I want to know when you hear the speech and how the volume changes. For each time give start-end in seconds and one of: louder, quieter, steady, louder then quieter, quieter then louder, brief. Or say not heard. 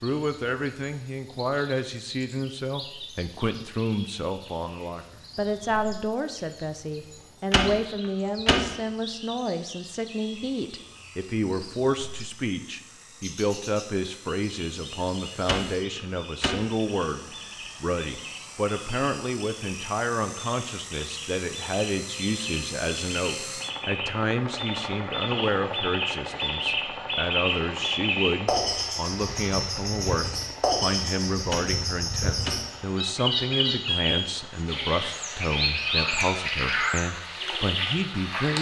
0.0-38.5 steady.